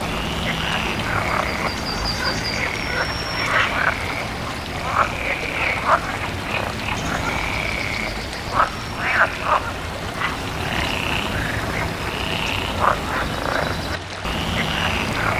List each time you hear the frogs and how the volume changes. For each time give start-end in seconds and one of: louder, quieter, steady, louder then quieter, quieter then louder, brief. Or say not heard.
0.0-15.3 steady.